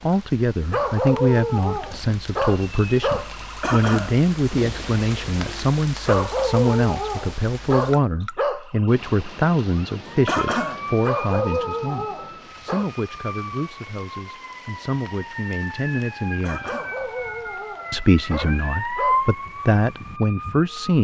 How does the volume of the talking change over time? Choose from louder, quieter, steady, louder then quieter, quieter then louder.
quieter then louder.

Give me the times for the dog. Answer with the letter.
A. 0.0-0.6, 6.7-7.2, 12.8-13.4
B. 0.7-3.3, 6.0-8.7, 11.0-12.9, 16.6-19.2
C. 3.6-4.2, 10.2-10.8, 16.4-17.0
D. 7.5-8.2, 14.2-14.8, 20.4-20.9
B.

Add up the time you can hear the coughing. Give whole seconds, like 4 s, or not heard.
2 s.